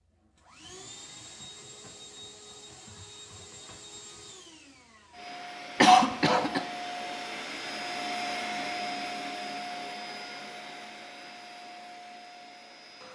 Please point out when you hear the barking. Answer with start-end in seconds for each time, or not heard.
not heard.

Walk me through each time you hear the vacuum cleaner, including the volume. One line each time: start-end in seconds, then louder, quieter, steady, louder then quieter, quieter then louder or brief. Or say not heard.
0.0-13.0 louder then quieter.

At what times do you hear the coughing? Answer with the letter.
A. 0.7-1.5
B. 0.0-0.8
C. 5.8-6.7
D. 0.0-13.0
C.